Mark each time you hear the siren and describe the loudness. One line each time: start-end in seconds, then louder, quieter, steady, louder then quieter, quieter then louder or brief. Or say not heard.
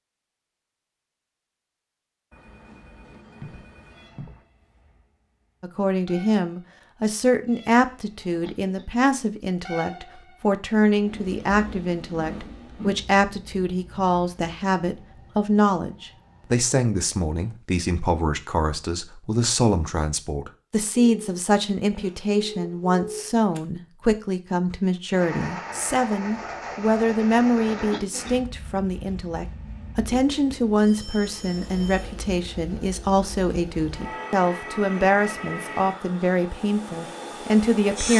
not heard.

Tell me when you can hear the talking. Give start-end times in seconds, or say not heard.
5.6-38.1.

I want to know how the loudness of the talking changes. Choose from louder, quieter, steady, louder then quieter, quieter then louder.
steady.